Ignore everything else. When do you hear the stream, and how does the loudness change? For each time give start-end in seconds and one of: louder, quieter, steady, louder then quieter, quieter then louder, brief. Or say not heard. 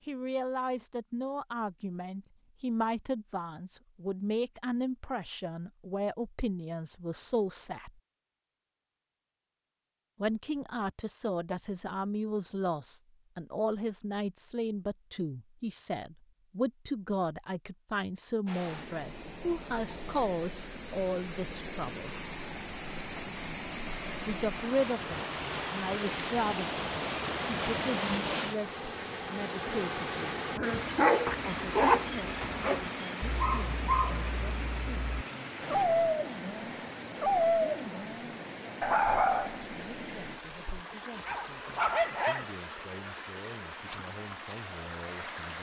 18.4-45.5 louder then quieter.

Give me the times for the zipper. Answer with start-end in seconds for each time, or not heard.
31.2-32.9.